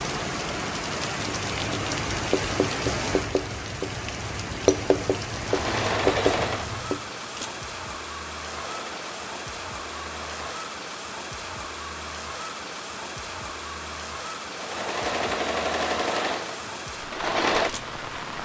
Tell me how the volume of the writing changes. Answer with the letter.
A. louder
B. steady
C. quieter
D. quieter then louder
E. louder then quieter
A.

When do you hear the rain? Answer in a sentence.
The rain can be heard from 0.0 to 18.4 s.